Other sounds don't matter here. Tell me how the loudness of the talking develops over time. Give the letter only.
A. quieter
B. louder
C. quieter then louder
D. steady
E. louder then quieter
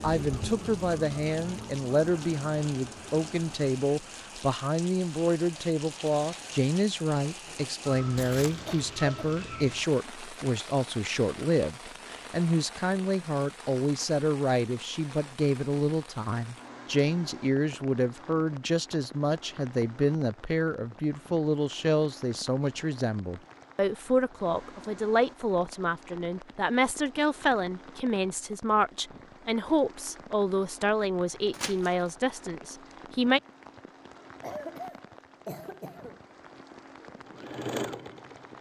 D.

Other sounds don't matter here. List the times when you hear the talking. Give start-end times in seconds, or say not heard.
0.0-33.4.